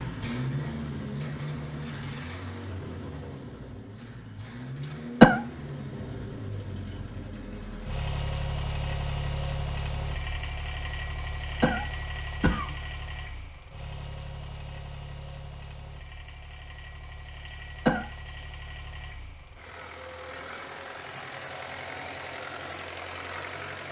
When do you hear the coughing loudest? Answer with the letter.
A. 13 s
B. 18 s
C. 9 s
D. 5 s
D.